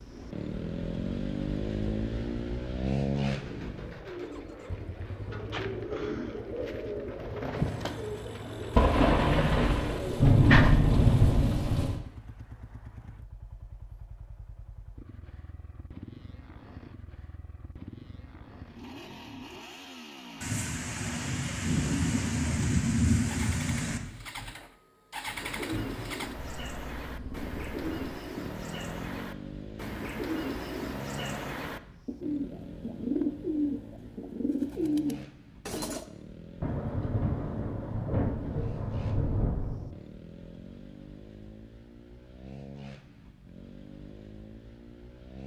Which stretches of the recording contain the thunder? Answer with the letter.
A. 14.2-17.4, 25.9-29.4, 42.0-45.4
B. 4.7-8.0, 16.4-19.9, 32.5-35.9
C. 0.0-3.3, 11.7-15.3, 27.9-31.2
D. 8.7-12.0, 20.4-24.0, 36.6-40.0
D.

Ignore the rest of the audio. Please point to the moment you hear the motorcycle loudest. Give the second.
3 s.